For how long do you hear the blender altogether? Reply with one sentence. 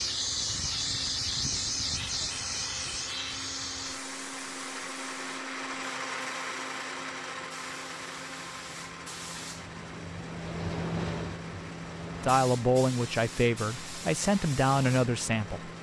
You can hear the blender for 16 seconds altogether.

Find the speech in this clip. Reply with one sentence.
The speech can be heard from 12.2 to 15.7 s.